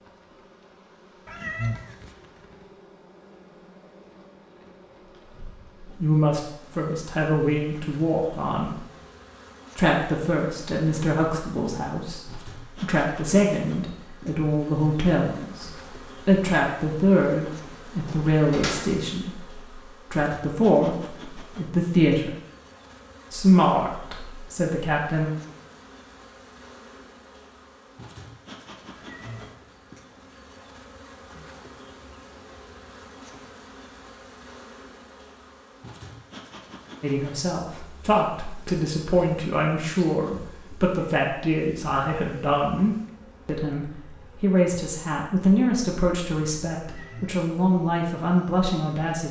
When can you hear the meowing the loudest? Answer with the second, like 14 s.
2 s.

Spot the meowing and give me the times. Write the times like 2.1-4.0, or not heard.
1.2-2.1, 28.9-29.8, 46.8-47.4.